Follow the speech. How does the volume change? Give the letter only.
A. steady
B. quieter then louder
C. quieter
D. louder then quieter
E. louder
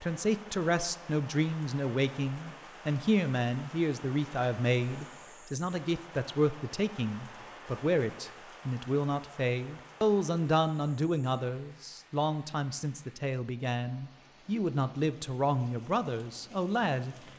A.